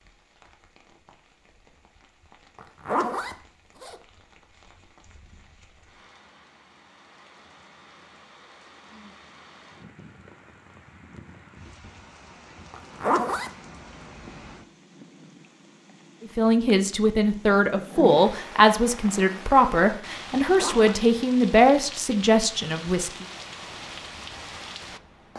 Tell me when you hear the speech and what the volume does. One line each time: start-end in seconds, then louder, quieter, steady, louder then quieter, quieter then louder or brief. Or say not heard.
16.2-23.2 steady.